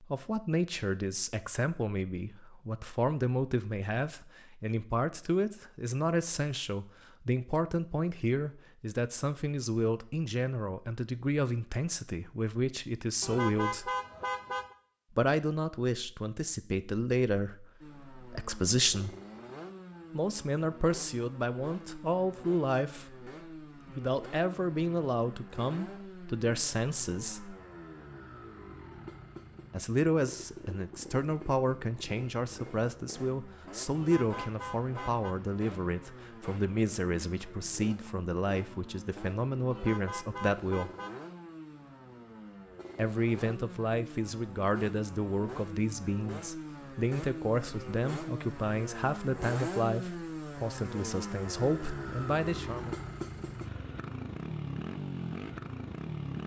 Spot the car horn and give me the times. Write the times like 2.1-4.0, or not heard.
13.2-14.8, 34.0-35.4, 39.7-41.2.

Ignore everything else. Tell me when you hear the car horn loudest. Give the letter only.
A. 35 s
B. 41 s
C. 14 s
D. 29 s
C.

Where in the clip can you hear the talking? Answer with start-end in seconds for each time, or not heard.
0.0-13.9, 15.2-19.1, 20.1-27.6, 29.7-40.9, 43.0-53.0.